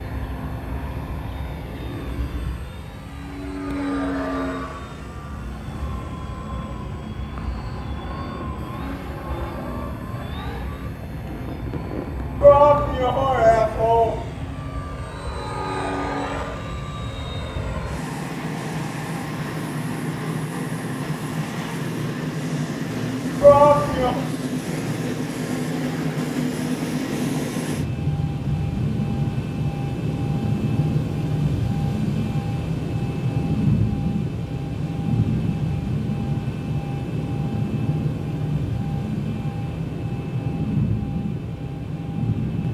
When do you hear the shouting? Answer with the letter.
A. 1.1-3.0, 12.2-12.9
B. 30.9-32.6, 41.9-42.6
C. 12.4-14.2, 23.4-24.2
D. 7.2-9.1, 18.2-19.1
C.